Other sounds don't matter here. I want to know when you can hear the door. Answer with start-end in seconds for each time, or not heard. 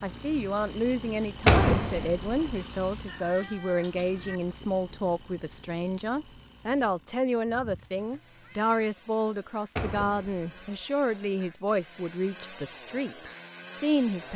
1.4-2.4, 9.8-10.7.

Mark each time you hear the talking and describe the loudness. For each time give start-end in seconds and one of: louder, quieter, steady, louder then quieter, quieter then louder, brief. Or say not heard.
0.0-14.3 steady.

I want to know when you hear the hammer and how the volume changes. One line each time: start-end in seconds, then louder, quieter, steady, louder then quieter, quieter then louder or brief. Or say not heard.
not heard.